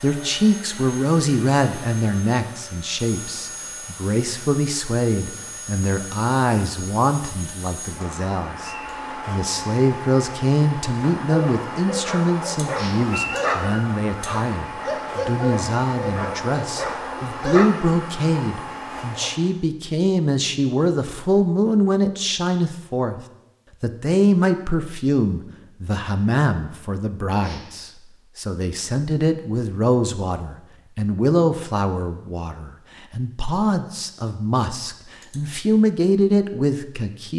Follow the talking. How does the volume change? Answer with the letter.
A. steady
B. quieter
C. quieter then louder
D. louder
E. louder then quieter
A.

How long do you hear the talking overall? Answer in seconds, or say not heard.
37 s.